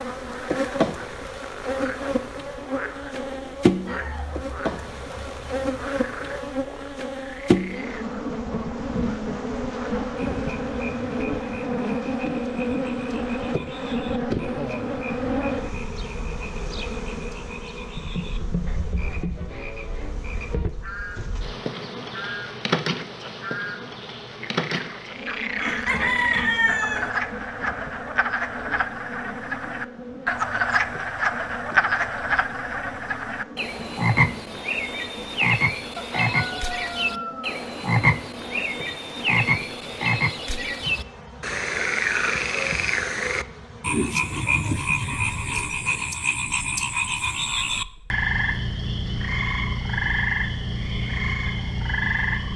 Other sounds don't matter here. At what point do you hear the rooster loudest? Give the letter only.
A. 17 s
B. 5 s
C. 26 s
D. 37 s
C.